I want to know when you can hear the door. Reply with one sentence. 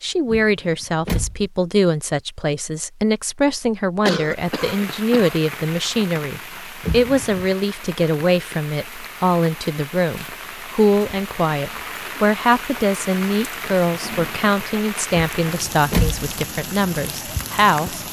You can hear the door from 0.2 to 1.5 s, from 6.8 to 7.5 s and from 15.1 to 16.2 s.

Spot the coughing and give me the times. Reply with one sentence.
You can hear the coughing from 4.0 to 5.3 s.